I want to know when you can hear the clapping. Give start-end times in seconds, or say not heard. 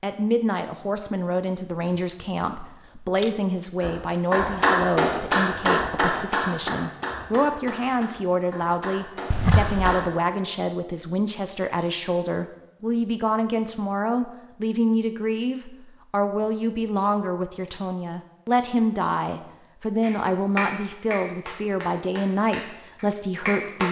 3.8-10.1, 20.0-23.8.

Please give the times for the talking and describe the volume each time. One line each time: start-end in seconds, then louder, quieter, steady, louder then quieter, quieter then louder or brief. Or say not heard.
0.0-23.8 steady.